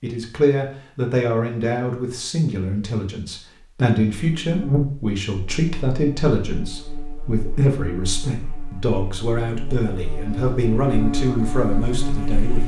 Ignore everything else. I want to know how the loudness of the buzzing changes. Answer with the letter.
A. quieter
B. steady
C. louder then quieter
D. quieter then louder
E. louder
D.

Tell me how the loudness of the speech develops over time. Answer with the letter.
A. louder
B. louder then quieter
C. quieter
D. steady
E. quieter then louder
D.